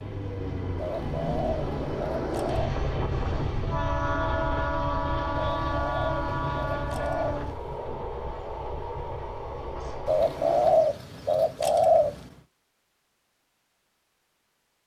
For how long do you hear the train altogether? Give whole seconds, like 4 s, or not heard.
11 s.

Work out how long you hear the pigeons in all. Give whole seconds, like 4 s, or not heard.
7 s.